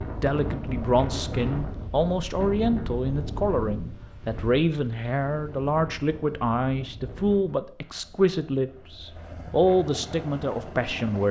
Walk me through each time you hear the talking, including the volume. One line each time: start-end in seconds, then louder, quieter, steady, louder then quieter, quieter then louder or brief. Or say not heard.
0.2-11.2 steady.